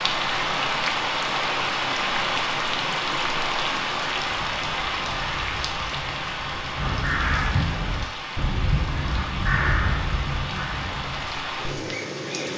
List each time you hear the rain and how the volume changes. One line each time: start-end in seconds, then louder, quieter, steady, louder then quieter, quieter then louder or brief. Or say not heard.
0.0-12.5 quieter.